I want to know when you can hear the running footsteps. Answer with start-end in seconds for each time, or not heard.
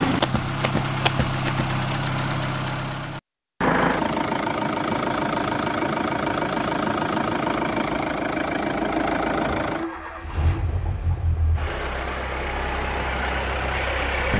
0.0-1.9.